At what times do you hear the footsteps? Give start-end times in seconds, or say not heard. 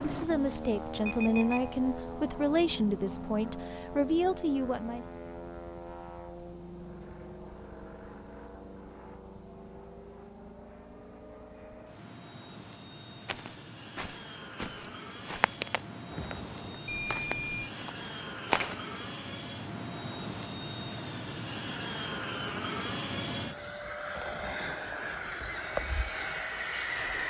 13.2-18.8.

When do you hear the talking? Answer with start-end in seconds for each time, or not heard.
0.0-5.0.